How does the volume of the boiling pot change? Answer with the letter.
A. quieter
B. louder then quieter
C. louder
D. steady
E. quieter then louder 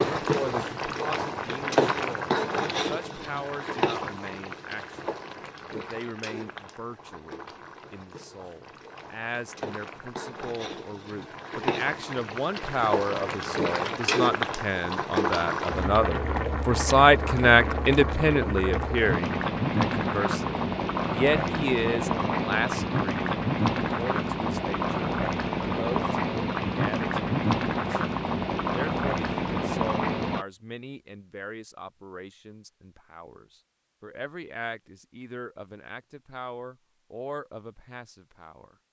E.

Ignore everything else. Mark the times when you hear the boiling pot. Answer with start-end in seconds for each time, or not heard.
0.0-30.4.